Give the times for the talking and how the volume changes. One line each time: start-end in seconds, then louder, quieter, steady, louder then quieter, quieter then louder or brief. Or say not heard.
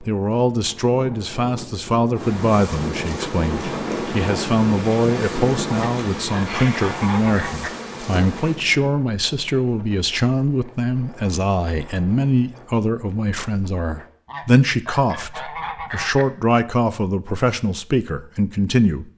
0.0-19.1 steady.